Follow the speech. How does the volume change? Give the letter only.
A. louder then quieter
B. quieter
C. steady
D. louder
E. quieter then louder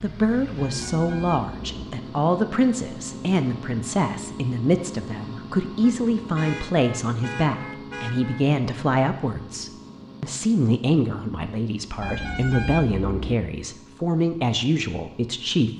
C.